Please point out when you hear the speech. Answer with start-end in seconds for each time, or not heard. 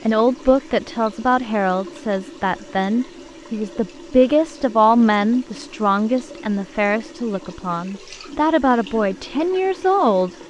0.1-10.3.